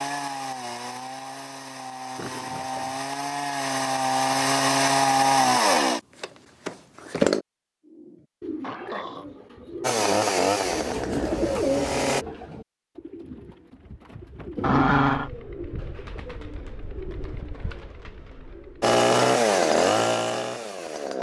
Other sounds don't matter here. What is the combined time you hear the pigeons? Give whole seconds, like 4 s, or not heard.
11 s.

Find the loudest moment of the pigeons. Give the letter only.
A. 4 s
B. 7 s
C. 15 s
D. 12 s
D.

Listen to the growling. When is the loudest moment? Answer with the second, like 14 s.
15 s.